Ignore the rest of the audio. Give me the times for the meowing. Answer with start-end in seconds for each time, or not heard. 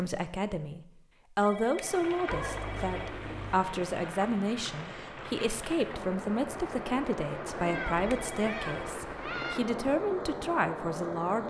2.2-3.6, 7.5-9.6.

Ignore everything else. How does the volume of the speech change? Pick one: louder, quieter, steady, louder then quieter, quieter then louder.
steady.